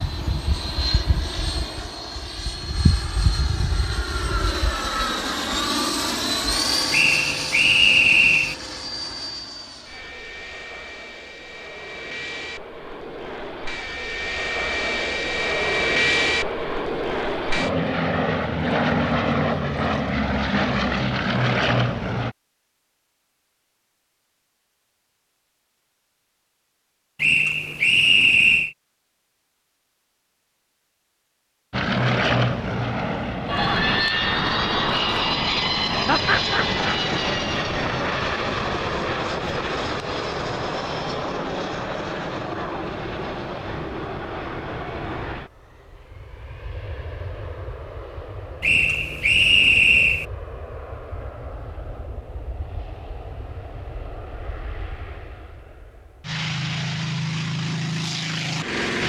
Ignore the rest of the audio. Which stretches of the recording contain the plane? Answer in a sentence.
You can hear the plane from 0.0 to 22.4 s and from 31.7 to 59.0 s.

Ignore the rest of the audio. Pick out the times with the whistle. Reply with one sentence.
The whistle can be heard from 6.9 to 8.6 s, from 27.2 to 28.7 s and from 48.6 to 50.2 s.